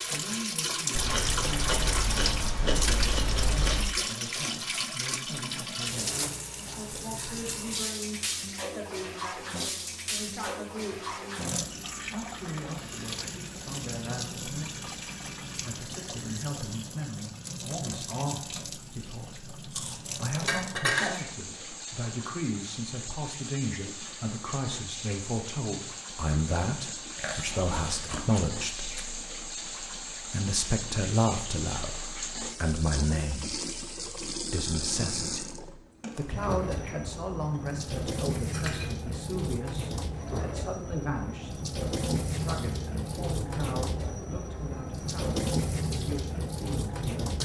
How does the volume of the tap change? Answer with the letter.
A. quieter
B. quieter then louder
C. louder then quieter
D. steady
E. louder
B.